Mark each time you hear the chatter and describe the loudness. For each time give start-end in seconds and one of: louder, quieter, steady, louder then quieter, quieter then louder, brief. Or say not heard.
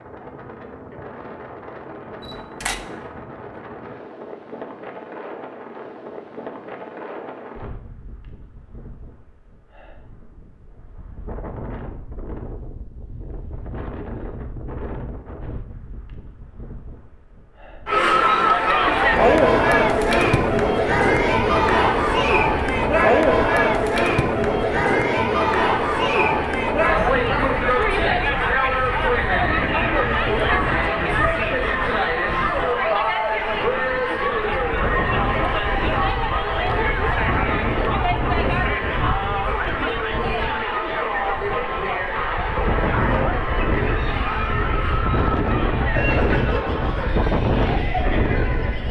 17.9-48.8 quieter.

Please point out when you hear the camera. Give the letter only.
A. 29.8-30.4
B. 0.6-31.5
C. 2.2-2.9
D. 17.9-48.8
C.